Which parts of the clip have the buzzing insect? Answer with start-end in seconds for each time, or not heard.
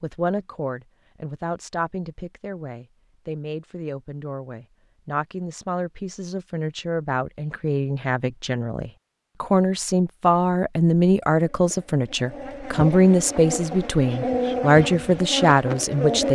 11.5-16.2.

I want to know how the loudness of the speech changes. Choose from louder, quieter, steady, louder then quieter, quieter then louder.
louder.